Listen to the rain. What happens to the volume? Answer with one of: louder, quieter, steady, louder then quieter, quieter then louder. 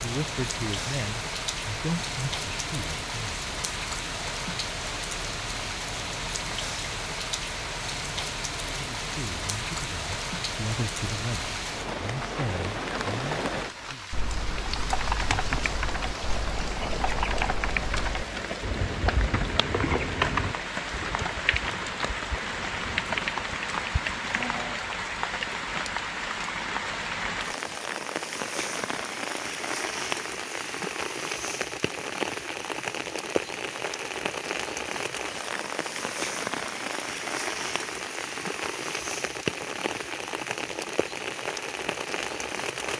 steady.